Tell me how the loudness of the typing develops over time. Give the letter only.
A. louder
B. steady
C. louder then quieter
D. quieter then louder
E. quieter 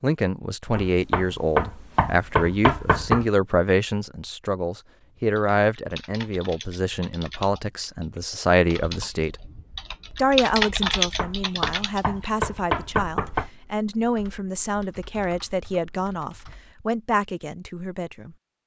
C.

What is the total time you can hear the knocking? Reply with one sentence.
The knocking can be heard for 5 seconds in total.